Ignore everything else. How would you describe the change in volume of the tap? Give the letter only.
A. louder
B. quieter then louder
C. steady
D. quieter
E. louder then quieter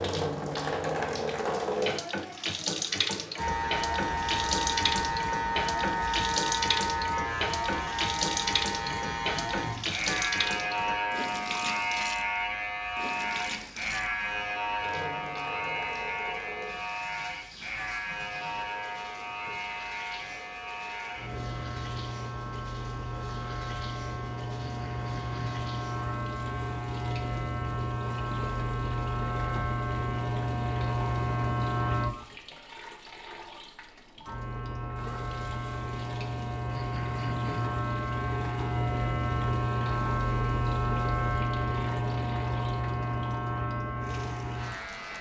D.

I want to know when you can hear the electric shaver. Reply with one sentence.
You can hear the electric shaver from 3.4 to 32.1 s and from 34.2 to 45.1 s.